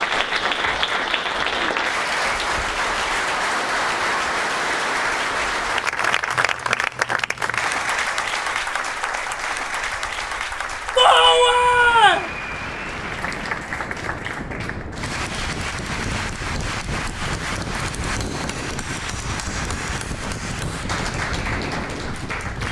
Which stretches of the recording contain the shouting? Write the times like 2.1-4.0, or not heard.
10.9-12.3.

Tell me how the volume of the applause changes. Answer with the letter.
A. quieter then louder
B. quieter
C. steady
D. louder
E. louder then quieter
B.